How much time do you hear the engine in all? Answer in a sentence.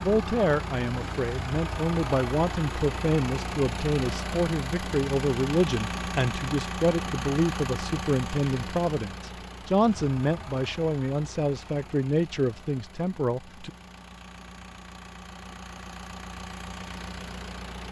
The engine can be heard for 18 seconds in total.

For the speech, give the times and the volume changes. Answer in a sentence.
You can hear the speech from 0.0 to 13.7 s, at a steady volume.